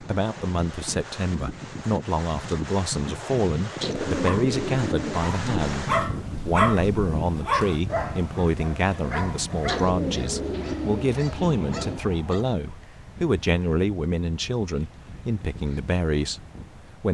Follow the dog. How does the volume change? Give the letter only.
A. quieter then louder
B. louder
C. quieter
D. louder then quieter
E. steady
C.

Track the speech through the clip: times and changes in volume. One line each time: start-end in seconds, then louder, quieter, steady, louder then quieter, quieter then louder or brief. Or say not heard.
0.0-17.0 steady.